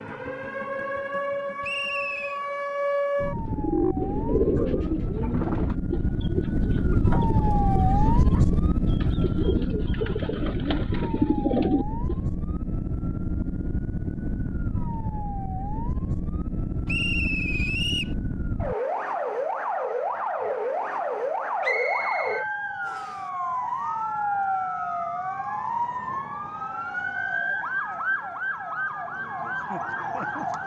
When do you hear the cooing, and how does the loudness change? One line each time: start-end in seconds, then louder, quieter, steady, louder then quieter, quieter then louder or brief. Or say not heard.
3.2-12.2 quieter then louder.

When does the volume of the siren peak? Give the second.
8 s.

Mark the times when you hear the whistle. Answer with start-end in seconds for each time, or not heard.
1.6-2.4, 16.9-18.1, 21.6-23.1.